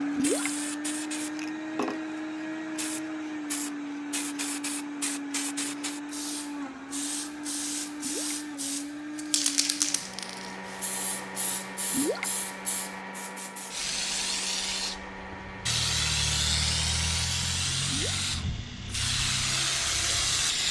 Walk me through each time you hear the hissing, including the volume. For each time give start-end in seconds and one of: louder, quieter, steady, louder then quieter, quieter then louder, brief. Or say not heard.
0.0-20.6 louder.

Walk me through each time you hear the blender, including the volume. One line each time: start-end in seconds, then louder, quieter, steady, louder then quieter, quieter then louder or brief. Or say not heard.
0.0-20.6 quieter.